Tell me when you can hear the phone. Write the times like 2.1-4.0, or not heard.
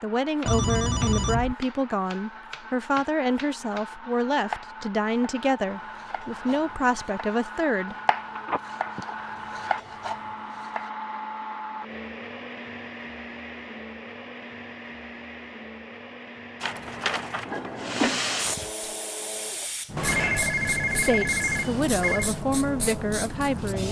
0.5-1.6, 8.3-9.1, 19.9-22.3.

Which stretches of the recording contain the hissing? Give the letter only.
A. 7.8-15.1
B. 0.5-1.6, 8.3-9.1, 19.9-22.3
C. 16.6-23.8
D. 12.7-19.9
C.